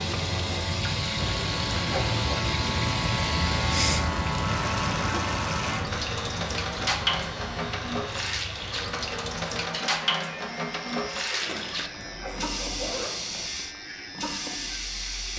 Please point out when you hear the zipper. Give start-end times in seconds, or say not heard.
1.1-2.5, 11.4-13.5.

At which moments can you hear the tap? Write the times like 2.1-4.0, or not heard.
0.0-15.3.